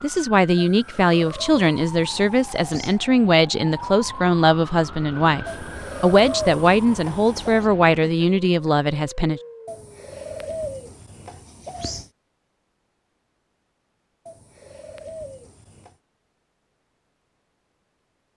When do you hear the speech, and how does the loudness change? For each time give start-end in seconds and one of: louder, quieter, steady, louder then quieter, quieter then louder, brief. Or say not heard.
0.0-9.4 steady.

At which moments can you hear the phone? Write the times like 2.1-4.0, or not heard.
not heard.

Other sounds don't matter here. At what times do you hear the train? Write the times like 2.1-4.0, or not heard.
not heard.